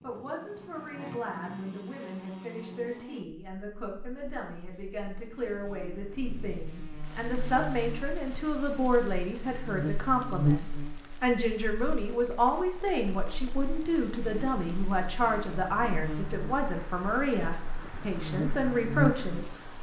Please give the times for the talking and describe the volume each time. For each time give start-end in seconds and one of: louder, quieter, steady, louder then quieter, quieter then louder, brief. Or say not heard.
0.0-19.7 louder.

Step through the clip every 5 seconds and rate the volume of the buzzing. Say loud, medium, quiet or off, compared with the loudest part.
medium, medium, loud, loud.